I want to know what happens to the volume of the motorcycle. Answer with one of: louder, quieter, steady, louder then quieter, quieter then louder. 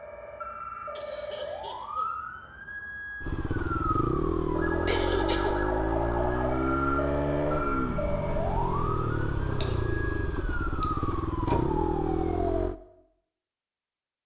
steady.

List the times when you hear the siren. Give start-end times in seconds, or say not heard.
0.0-12.7.